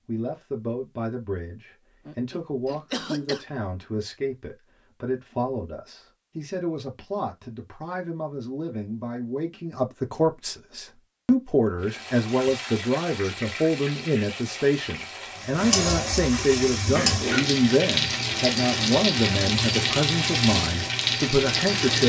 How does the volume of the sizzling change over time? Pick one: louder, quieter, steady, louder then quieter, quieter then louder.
louder.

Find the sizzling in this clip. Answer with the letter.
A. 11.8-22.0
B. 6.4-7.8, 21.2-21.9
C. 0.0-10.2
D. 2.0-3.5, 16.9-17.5
A.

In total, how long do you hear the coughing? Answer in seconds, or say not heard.
2 s.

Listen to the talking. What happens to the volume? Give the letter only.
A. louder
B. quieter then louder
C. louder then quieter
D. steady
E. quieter
A.